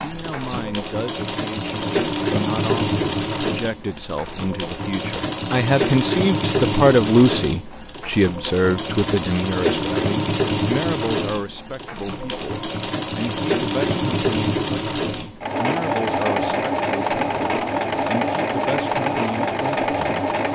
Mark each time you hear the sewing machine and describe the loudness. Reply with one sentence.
You can hear the sewing machine from 0.0 to 20.5 s, at a steady volume.